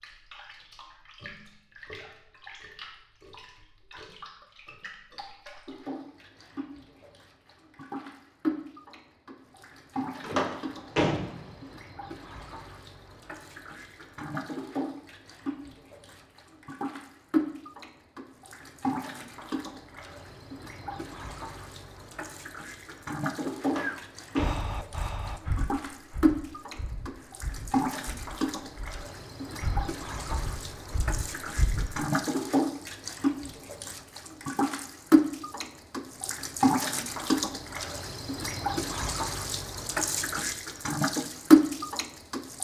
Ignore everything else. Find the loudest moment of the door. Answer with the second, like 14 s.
11 s.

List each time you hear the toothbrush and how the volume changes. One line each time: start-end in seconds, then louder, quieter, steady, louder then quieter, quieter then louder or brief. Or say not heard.
not heard.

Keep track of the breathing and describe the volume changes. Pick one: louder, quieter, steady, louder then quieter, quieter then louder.
quieter then louder.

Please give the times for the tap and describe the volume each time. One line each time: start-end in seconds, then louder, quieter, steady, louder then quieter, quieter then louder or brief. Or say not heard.
0.0-42.6 louder.